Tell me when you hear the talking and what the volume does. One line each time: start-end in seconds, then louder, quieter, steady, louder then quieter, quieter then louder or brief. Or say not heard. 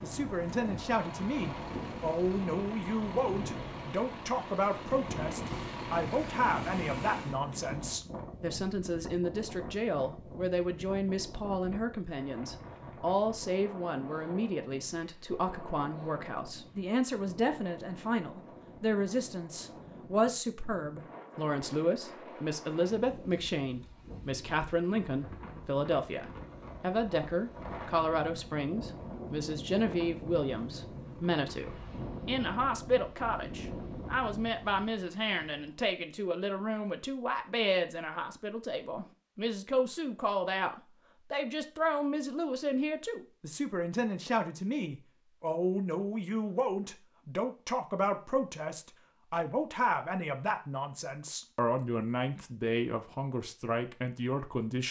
0.0-54.8 steady.